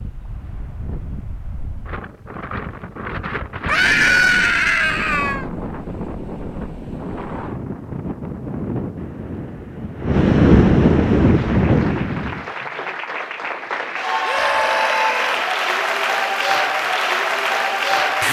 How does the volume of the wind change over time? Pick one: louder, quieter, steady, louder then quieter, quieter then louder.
louder.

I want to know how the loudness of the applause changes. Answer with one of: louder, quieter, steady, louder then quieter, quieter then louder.
louder.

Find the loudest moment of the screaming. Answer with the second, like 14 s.
4 s.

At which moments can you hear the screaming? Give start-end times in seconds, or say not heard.
3.6-5.5, 14.2-15.4.